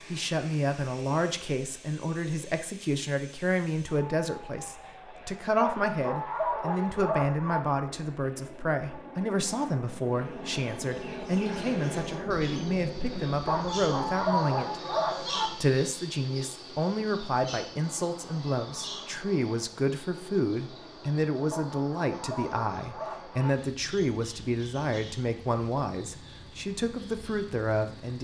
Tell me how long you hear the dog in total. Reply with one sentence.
The dog can be heard for 6 seconds in total.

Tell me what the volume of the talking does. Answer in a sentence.
The volume of the talking stays about the same.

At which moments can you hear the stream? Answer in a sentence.
You can't hear the stream here.